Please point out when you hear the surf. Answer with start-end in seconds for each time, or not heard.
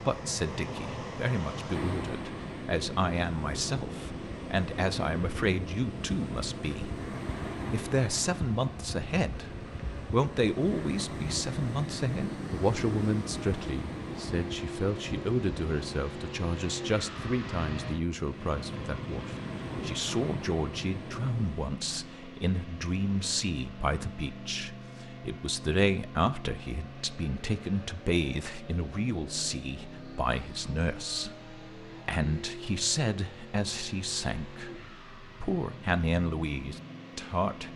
0.0-21.7.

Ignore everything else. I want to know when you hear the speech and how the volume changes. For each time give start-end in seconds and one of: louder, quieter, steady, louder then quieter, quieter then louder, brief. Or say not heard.
0.0-37.7 steady.